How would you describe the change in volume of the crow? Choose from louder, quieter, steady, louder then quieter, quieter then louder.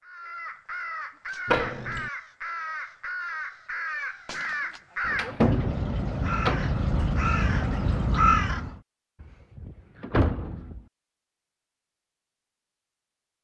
louder.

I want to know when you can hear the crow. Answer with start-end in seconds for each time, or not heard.
0.0-8.8.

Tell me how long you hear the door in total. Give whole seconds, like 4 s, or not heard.
4 s.